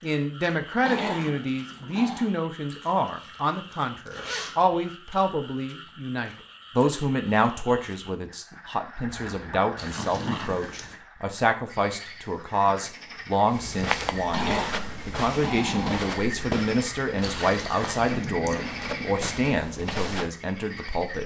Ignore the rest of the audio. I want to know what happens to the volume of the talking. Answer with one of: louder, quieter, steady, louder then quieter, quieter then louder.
steady.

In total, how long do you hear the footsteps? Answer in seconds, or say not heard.
7 s.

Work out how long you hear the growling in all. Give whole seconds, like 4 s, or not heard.
5 s.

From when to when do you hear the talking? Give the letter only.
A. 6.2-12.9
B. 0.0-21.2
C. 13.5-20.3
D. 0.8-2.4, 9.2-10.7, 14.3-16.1
B.